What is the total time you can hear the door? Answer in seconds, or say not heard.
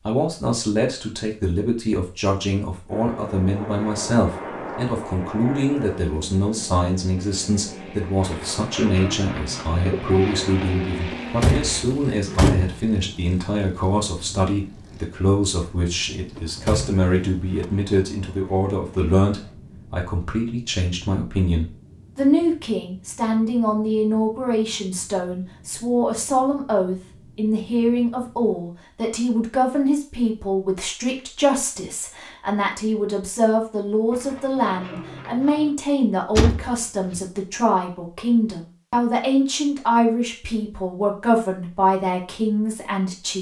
4 s.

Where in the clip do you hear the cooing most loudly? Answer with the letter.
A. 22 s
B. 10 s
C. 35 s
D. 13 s
B.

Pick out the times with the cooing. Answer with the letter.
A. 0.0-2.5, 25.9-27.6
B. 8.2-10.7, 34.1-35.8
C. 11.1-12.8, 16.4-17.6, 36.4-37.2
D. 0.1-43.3
B.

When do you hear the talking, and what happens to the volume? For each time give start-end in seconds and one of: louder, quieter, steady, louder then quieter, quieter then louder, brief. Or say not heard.
0.1-43.3 steady.